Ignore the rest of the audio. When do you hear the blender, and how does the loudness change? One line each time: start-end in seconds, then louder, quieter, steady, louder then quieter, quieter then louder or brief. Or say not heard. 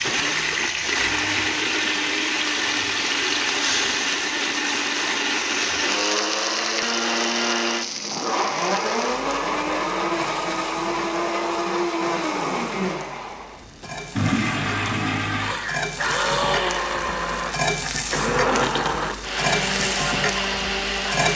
0.0-21.3 steady.